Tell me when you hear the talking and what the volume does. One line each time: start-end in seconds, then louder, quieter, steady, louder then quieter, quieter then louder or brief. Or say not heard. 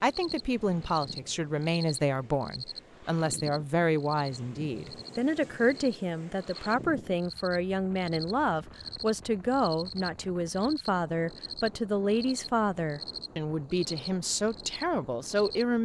0.0-15.7 steady.